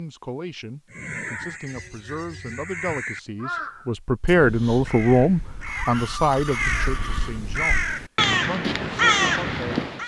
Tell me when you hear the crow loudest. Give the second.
9 s.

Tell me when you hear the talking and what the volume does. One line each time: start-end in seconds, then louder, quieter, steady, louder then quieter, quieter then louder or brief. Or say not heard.
0.0-10.0 louder then quieter.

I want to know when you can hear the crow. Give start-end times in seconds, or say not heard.
0.9-10.0.